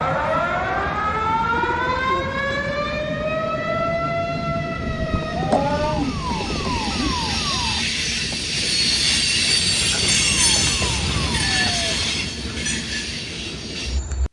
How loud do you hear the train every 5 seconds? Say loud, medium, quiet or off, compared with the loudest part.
medium, loud, loud.